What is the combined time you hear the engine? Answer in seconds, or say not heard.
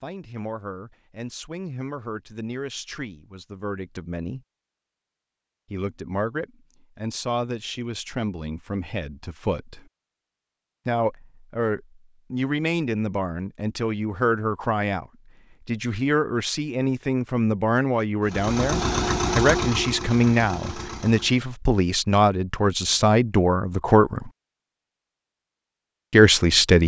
3 s.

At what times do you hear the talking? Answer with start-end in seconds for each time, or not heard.
0.0-4.4, 5.7-9.8, 10.8-15.1, 15.7-24.3, 26.1-26.8.